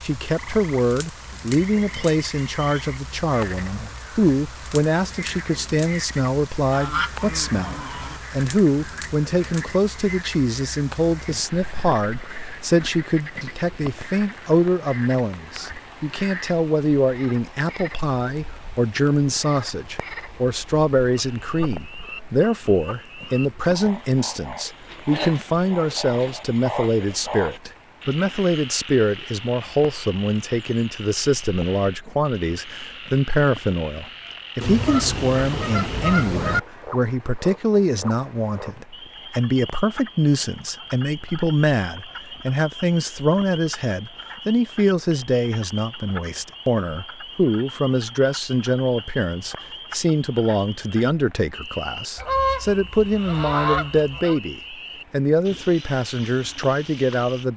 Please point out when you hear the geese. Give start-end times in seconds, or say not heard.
6.7-8.2, 34.6-36.6, 52.1-54.4.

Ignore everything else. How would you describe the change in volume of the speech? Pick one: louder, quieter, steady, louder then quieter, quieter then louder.
steady.